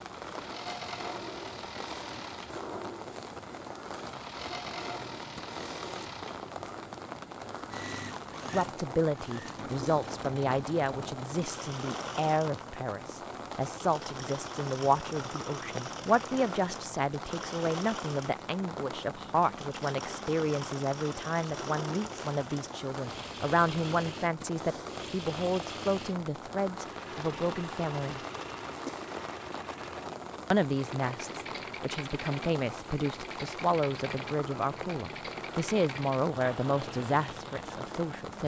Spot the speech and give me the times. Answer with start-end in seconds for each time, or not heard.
8.5-28.2, 30.5-38.4.